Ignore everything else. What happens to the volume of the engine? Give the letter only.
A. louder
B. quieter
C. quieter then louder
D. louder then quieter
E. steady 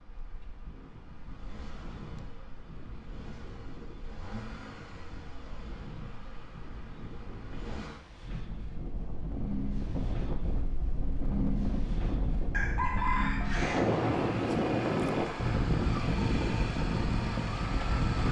A.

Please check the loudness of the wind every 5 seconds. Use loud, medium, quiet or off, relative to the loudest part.
quiet, quiet, loud, loud.